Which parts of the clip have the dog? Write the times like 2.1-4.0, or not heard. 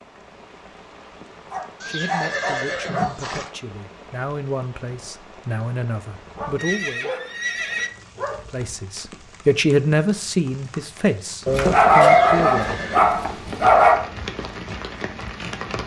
1.5-3.1, 6.3-8.4, 11.4-14.1.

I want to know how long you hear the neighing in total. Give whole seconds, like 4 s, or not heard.
4 s.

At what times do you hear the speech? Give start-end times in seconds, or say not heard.
1.9-7.1, 8.5-12.8.